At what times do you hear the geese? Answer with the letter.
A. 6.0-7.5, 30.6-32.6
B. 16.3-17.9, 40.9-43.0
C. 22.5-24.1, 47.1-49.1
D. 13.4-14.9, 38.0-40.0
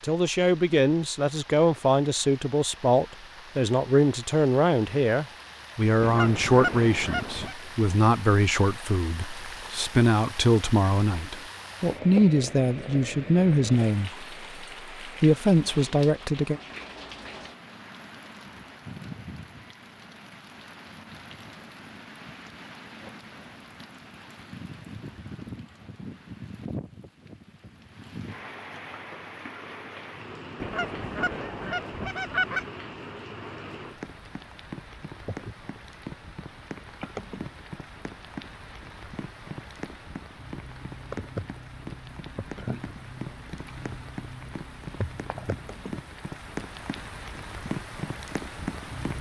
A.